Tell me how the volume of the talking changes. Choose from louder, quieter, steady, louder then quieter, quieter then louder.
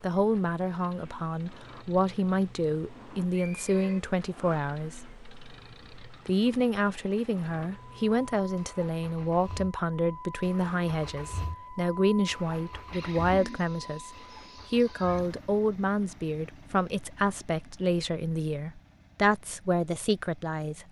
steady.